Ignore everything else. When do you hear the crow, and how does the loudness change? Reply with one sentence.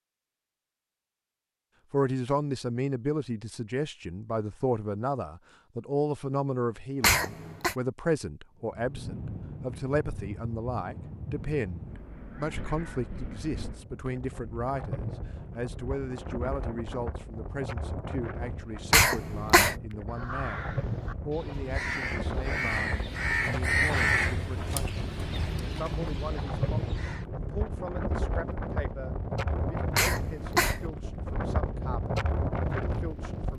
You can hear the crow from 20.1 to 27.2 s, getting louder then quieter.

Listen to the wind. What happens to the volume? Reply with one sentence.
The volume of the wind goes up.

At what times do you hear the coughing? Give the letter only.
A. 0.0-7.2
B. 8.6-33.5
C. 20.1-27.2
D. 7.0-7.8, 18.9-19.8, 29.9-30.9
D.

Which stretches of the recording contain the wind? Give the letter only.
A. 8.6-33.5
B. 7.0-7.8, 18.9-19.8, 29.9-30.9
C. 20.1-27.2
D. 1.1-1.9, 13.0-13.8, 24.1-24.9
A.